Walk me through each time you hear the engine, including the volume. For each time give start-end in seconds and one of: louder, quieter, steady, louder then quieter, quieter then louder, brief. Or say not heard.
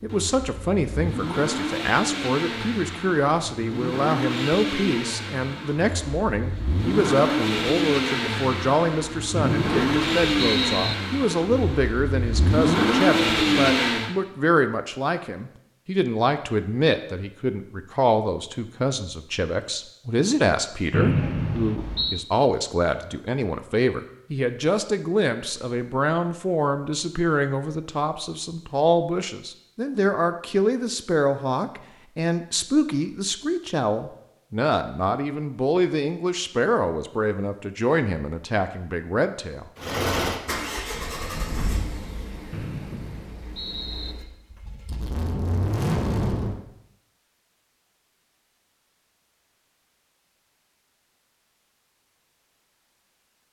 0.0-14.2 louder
39.8-46.6 quieter then louder.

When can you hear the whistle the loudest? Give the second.
21 s.